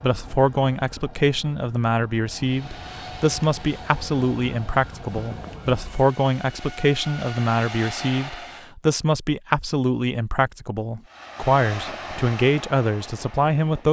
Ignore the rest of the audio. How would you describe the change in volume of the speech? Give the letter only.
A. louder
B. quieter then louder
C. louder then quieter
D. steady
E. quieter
D.